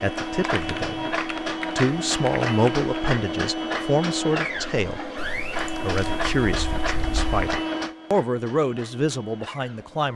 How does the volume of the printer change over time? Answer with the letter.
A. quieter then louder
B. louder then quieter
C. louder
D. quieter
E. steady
D.